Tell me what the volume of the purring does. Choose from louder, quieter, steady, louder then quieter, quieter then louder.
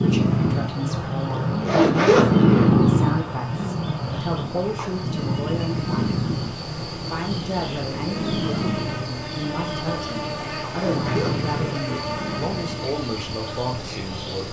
quieter.